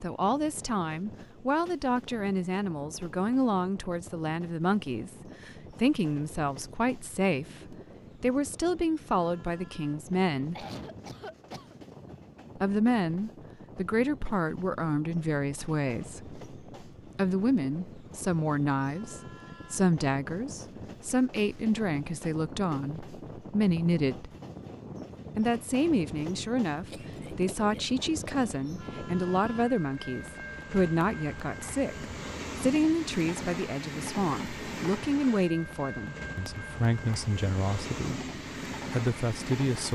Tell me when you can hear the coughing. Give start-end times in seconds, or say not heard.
10.3-11.8, 26.9-28.4.